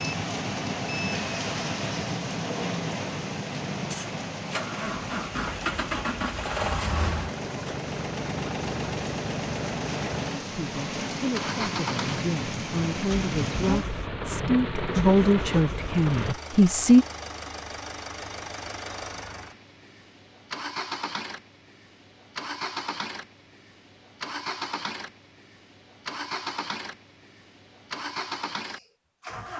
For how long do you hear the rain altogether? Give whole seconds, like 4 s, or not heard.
16 s.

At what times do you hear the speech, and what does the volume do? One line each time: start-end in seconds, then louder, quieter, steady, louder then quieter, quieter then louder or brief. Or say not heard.
10.4-17.1 louder.